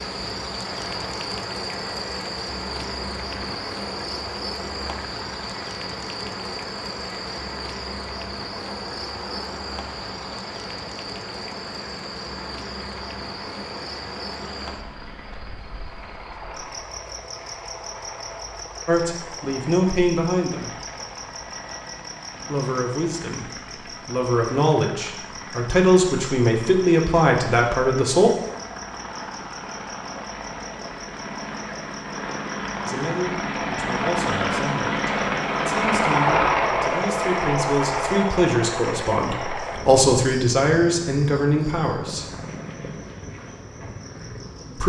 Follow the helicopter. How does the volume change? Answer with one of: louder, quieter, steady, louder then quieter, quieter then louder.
louder.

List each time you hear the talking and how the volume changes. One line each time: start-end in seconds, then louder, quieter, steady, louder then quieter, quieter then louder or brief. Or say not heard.
18.9-20.8 brief
22.4-28.3 louder
32.9-42.3 louder.